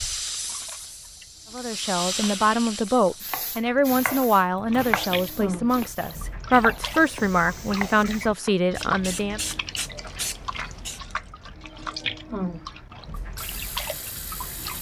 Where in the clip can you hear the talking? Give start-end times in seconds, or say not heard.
1.5-9.4.